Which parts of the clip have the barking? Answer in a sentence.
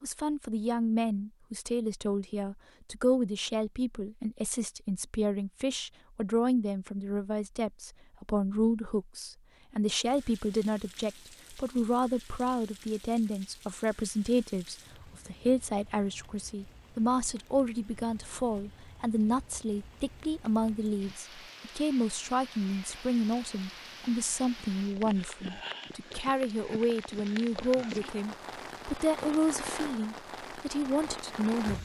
The barking can't be heard in this clip.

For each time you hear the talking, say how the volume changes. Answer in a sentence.
The talking can be heard from 0.0 to 31.8 s, at a steady volume.